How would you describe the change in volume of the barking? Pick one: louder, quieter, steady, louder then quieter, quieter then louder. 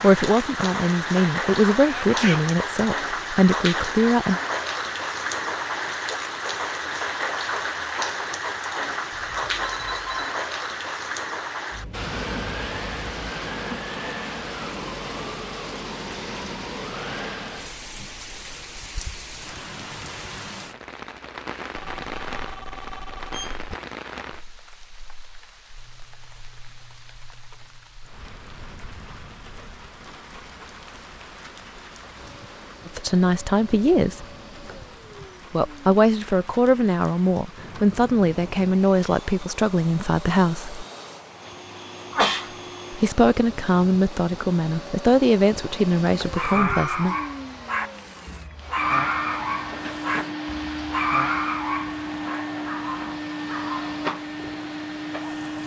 quieter.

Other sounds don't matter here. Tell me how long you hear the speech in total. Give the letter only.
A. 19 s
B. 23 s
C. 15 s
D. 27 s
C.